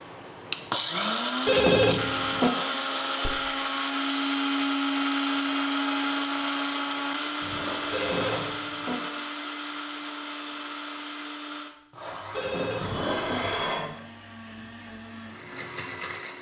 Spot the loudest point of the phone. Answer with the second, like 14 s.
2 s.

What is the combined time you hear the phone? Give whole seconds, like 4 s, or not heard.
3 s.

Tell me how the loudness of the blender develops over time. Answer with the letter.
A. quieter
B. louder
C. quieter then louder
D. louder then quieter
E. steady
A.